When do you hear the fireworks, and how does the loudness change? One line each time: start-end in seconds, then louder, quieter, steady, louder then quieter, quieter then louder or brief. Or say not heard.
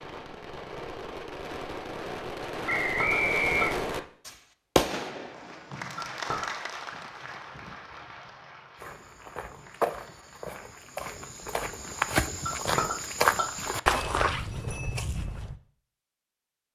0.0-5.8 louder.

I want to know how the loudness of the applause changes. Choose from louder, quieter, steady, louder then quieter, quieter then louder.
quieter.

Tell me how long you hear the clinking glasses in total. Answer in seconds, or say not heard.
3 s.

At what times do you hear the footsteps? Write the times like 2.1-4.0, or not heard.
8.8-15.6.